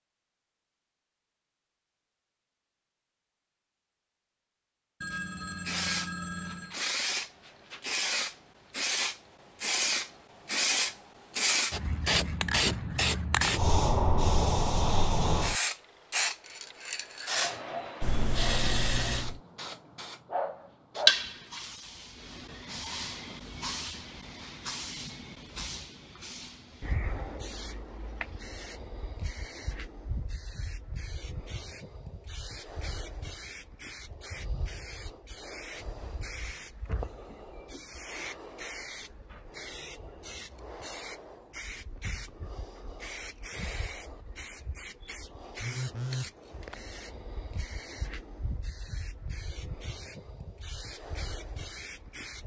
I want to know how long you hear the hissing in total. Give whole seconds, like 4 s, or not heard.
47 s.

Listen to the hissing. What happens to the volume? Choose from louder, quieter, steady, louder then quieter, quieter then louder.
quieter.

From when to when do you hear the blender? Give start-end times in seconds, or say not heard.
not heard.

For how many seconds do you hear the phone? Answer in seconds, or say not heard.
4 s.